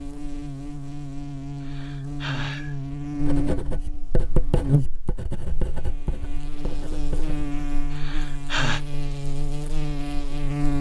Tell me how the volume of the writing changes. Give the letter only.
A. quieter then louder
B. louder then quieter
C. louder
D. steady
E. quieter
B.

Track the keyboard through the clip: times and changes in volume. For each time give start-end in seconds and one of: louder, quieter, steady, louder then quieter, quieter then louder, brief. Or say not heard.
not heard.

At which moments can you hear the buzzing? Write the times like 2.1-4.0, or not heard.
0.0-10.7.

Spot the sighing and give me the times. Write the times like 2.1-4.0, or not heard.
1.6-2.8, 7.9-8.8.